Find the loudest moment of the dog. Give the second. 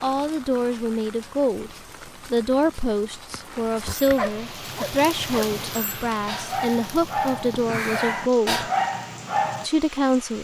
9 s.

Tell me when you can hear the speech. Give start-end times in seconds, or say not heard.
0.0-8.7, 9.6-10.3.